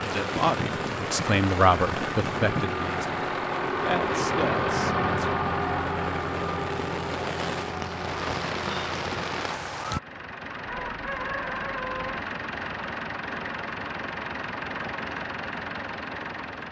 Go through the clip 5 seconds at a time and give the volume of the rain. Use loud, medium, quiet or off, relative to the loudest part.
loud, loud, off, off.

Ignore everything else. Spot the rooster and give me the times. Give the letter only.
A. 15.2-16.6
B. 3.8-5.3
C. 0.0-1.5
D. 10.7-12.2
D.